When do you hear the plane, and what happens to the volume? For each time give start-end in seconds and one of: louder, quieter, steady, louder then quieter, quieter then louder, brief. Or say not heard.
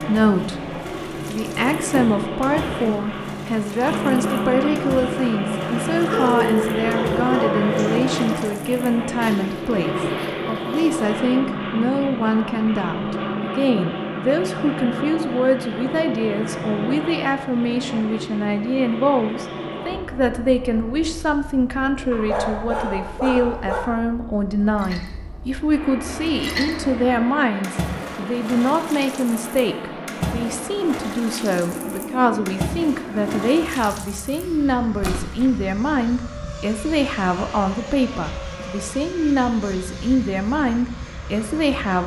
0.0-42.0 quieter.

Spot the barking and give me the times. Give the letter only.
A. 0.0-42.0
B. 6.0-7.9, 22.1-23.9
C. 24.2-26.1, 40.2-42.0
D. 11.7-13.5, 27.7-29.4
B.